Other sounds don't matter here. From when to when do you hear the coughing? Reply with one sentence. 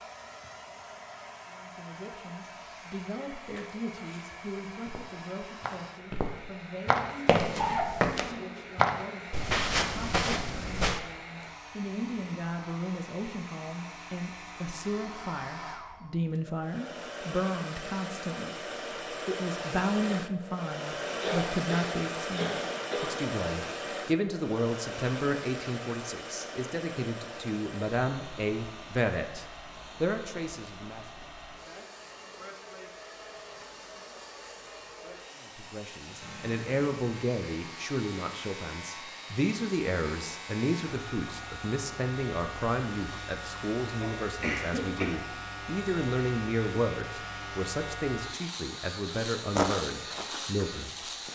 The coughing can be heard from 7.0 to 8.6 s, from 21.0 to 23.2 s and from 44.0 to 45.2 s.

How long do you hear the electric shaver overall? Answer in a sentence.
You can hear the electric shaver for 15 seconds altogether.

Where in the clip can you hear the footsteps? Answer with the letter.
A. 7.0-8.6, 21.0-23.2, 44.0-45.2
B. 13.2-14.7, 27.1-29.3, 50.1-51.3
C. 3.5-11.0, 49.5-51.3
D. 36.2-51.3
C.